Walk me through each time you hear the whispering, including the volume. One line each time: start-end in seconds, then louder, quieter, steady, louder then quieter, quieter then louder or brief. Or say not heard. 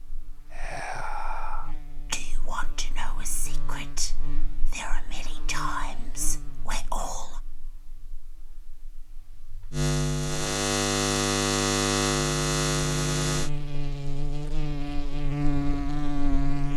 0.5-7.4 steady.